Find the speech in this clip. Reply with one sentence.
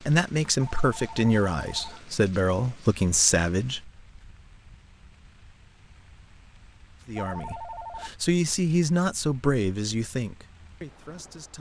The speech can be heard from 0.0 to 3.9 s and from 7.0 to 11.5 s.